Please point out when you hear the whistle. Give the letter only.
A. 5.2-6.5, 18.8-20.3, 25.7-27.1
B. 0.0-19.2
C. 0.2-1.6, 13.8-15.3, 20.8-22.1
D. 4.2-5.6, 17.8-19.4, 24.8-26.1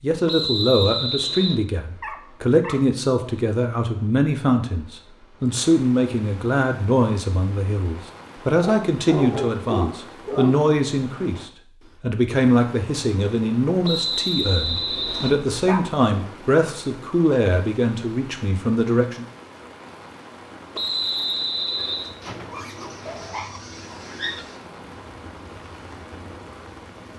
C.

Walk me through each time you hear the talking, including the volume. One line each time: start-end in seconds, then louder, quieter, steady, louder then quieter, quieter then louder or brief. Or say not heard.
0.0-19.2 steady.